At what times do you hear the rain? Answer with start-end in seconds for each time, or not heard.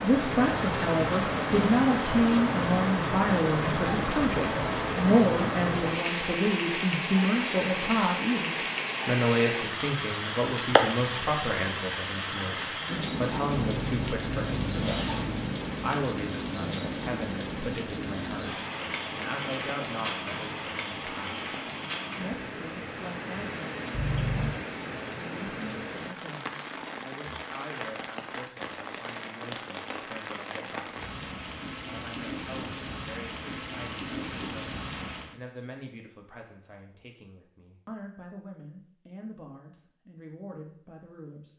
0.0-35.4.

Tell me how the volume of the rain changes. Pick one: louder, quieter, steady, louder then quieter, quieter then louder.
quieter.